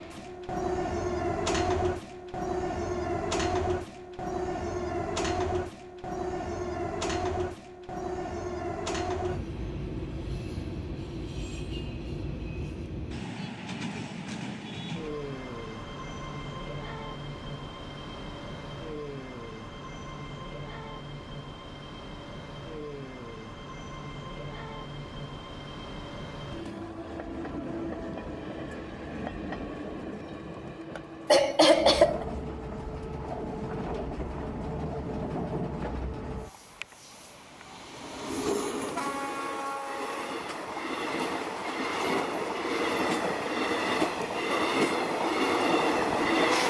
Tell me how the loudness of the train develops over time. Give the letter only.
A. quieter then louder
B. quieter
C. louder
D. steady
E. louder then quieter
A.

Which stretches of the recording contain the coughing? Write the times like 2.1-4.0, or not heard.
31.2-32.2.